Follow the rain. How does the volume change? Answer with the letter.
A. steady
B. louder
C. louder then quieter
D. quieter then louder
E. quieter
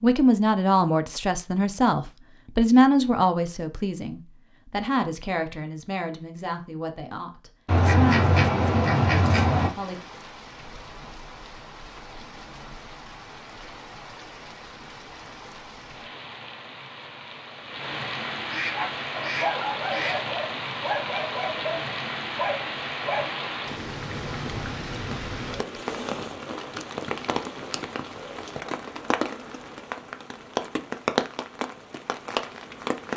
B.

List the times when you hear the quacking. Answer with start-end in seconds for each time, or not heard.
7.7-9.7, 18.4-20.2.